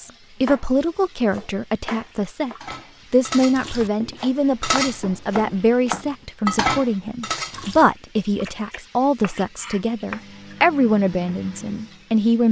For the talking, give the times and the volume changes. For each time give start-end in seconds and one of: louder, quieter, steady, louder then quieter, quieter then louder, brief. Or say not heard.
0.0-12.4 steady.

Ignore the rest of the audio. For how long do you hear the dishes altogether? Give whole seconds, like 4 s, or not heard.
5 s.